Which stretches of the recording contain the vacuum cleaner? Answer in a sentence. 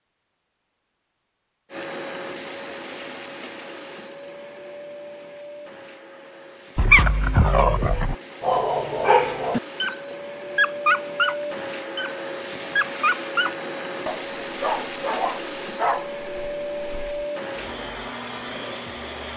The vacuum cleaner can be heard from 1.7 to 19.3 s.